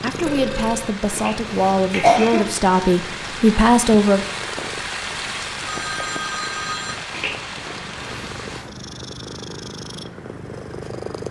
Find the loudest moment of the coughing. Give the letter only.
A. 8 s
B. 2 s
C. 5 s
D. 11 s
B.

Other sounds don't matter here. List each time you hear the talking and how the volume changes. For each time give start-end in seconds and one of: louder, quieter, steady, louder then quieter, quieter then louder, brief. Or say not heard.
0.0-4.2 louder.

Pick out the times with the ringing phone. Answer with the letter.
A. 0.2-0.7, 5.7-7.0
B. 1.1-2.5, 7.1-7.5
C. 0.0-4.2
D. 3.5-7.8
A.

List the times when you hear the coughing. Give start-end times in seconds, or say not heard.
1.1-2.5, 7.1-7.5.